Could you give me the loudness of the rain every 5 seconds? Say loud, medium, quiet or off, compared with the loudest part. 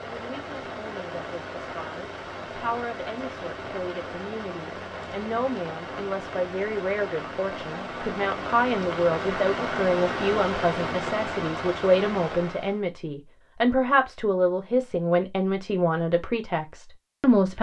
medium, loud, loud, off.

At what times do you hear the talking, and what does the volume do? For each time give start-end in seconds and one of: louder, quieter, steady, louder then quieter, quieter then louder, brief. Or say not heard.
0.0-17.5 louder.